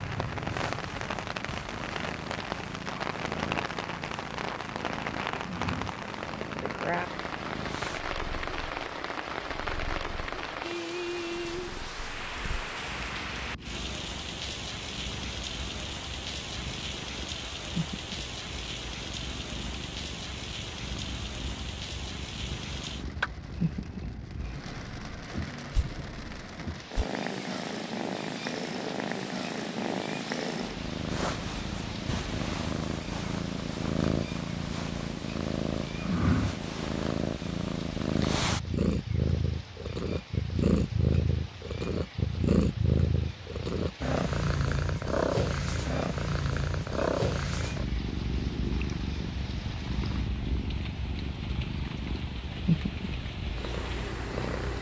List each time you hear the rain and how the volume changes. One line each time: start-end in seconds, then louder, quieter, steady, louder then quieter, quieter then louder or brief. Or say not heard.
0.0-54.7 quieter.